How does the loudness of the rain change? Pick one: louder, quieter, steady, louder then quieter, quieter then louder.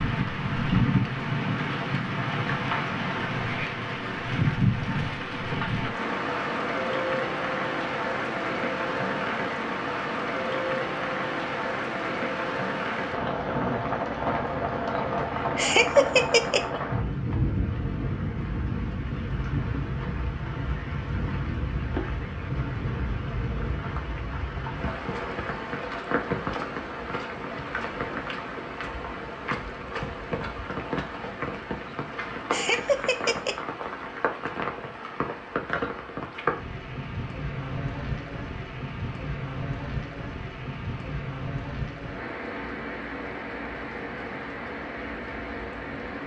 quieter.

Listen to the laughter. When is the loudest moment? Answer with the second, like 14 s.
16 s.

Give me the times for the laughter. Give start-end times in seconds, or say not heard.
14.9-16.6, 32.3-33.5.